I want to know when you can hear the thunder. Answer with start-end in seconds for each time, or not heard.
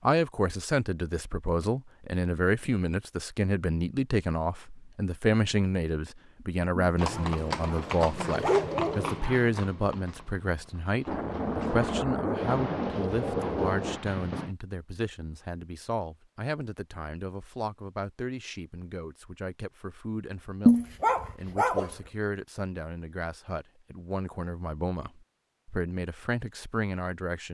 11.1-14.0.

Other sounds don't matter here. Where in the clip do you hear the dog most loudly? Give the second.
21 s.